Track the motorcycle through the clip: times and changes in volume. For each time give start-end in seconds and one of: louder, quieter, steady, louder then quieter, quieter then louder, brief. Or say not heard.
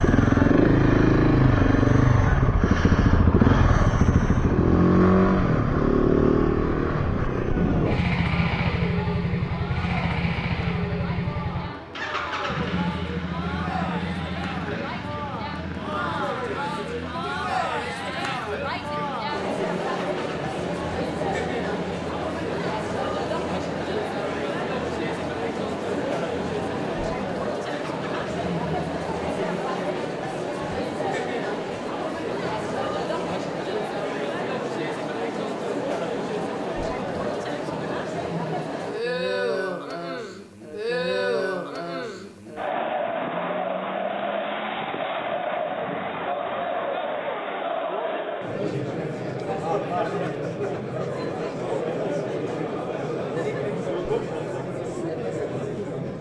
0.0-29.4 quieter.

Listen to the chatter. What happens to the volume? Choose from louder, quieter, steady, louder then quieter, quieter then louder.
louder.